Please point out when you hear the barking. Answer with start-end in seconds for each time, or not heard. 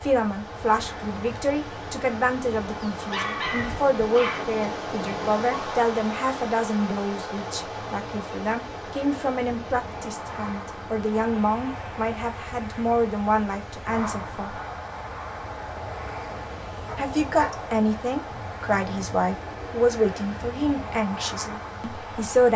3.1-4.6, 16.9-17.6.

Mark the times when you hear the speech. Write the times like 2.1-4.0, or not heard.
0.0-14.6, 16.9-22.5.